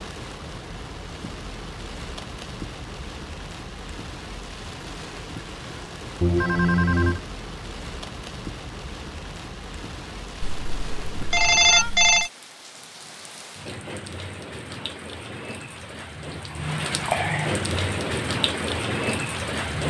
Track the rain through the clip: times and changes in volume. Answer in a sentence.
You can hear the rain from 0.0 to 19.8 s, getting louder.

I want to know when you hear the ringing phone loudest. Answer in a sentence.
The loudest moment of the ringing phone is at 12 seconds.